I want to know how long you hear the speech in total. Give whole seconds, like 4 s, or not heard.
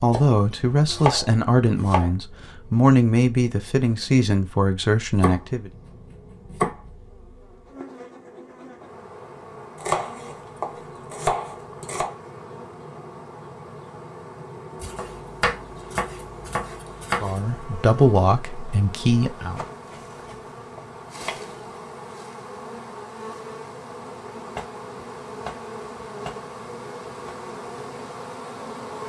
8 s.